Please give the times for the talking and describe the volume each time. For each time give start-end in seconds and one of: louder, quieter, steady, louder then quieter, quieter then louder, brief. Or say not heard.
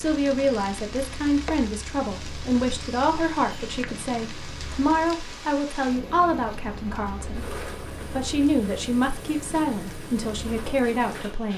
0.0-11.5 steady.